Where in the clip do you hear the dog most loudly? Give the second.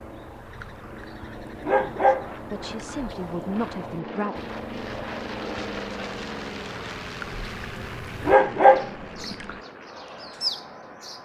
9 s.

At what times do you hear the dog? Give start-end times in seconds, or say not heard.
0.6-3.0, 7.2-9.6.